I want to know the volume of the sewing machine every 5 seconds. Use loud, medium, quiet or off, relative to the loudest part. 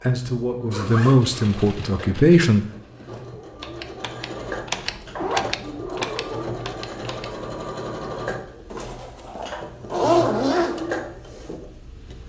medium, loud, loud.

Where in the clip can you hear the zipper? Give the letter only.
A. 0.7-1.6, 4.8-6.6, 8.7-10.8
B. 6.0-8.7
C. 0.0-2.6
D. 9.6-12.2
A.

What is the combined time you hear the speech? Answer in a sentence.
You can hear the speech for 3 seconds altogether.